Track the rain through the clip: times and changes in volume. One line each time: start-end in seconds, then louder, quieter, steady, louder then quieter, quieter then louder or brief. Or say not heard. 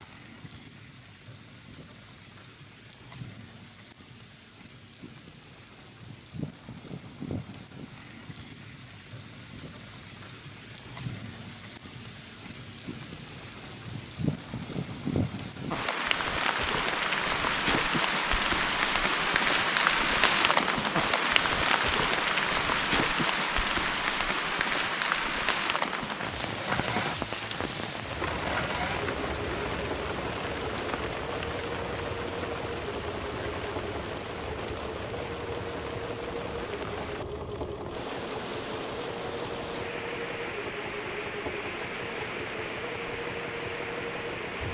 0.0-44.6 louder then quieter.